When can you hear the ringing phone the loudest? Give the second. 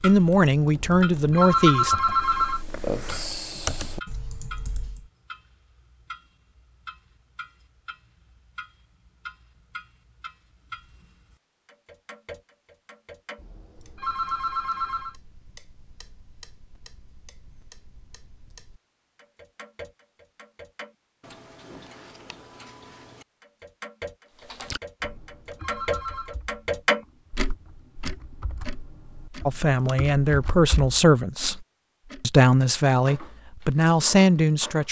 2 s.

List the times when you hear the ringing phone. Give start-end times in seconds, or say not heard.
0.8-2.6, 13.3-15.2, 25.0-26.4.